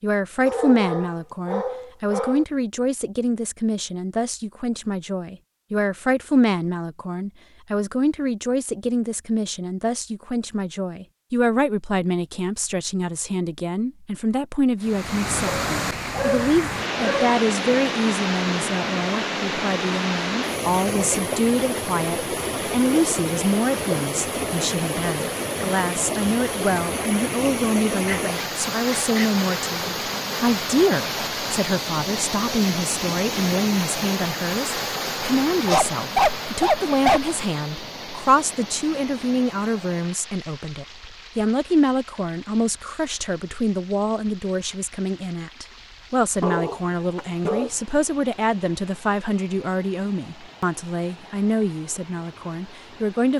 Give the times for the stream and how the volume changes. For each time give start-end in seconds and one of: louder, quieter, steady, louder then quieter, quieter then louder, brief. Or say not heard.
14.8-53.3 quieter.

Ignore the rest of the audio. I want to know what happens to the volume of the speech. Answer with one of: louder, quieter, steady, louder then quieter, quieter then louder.
steady.